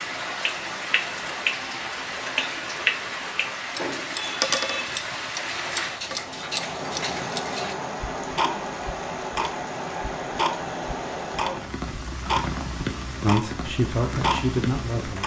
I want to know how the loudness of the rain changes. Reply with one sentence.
The volume of the rain stays about the same.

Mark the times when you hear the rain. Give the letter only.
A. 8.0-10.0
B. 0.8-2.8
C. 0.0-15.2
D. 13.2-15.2
C.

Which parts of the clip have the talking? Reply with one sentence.
You can hear the talking from 13.2 to 15.2 s.